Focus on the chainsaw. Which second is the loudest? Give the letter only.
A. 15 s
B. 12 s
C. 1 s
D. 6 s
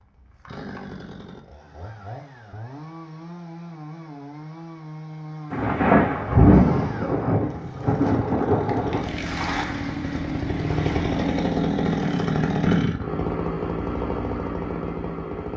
B.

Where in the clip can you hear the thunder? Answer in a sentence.
The thunder can be heard from 5.5 to 9.1 s.